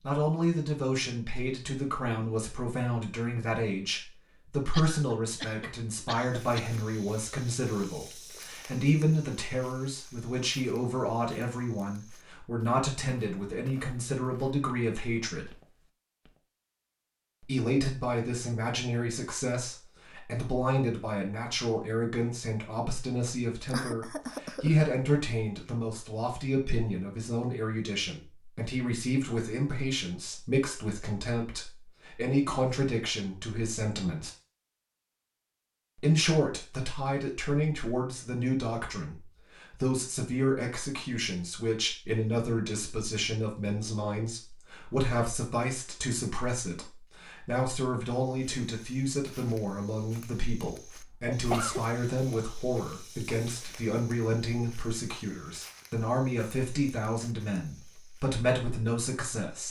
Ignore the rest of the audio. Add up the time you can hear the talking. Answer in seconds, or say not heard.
56 s.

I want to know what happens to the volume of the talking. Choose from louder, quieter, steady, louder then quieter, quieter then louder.
steady.